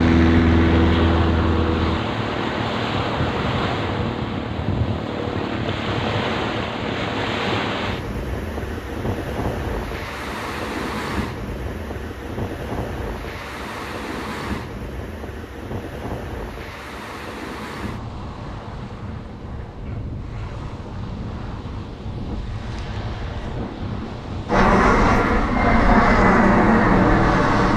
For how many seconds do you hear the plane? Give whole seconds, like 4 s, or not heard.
5 s.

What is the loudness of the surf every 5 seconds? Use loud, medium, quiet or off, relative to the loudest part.
loud, loud, medium, medium, medium, loud.